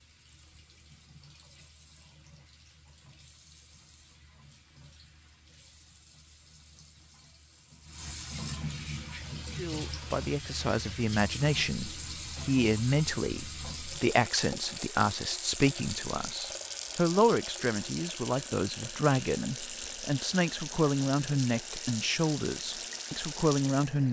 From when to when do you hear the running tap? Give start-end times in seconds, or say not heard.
0.0-24.0.